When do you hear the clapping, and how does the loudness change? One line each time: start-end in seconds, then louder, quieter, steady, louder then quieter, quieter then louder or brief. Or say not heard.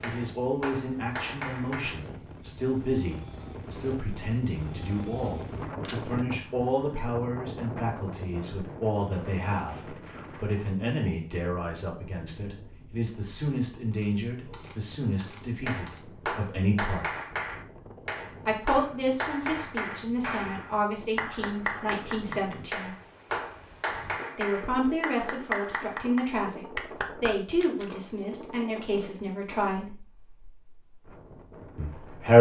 0.0-2.0 brief
15.7-27.4 steady.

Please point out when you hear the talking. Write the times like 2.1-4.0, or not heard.
0.0-17.1, 18.4-22.9, 24.4-29.9, 31.8-32.3.